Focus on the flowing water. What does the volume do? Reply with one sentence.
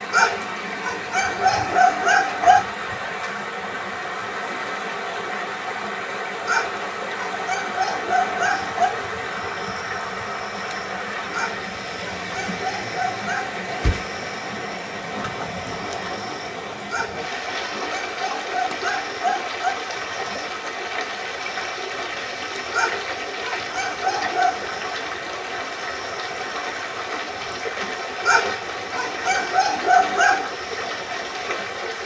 The volume of the flowing water stays about the same.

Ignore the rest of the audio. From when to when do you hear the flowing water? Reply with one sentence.
You can hear the flowing water from 0.0 to 32.0 s.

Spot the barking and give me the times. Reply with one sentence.
You can hear the barking from 0.1 to 2.6 s, from 6.5 to 8.9 s, from 11.3 to 13.6 s, from 16.9 to 19.8 s, from 22.7 to 24.6 s and from 28.2 to 30.5 s.